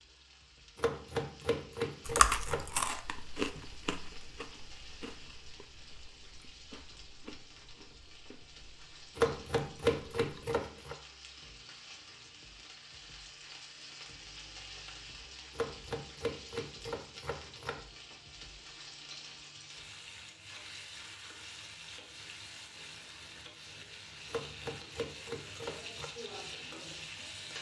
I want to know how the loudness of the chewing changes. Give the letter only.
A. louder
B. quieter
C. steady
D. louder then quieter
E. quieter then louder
B.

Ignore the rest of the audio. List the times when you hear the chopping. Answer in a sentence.
You can hear the chopping from 0.8 to 2.7 s, from 9.2 to 10.9 s, from 15.5 to 17.9 s and from 24.2 to 26.1 s.